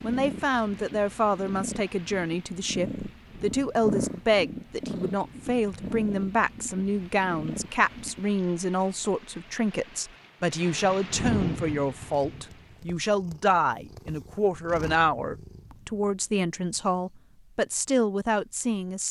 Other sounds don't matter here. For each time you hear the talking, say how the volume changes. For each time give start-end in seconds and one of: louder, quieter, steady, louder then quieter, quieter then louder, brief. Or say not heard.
0.0-19.0 steady.